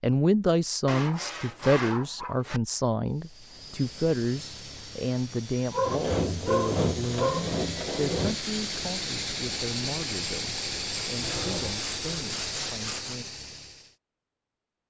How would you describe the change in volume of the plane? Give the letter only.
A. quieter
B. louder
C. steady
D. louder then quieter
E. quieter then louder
B.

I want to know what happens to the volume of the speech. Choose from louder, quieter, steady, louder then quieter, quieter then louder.
quieter.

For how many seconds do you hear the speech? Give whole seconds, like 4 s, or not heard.
13 s.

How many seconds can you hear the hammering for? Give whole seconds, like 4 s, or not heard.
not heard.